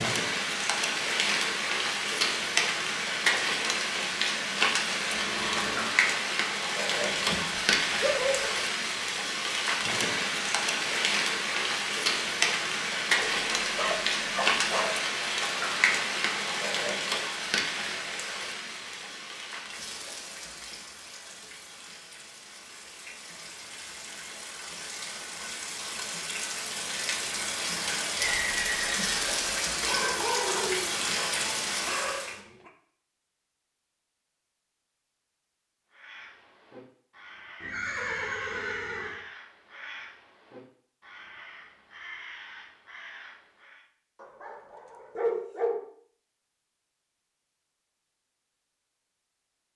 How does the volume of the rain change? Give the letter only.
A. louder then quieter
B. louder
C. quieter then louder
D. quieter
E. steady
C.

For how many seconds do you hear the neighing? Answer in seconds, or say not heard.
4 s.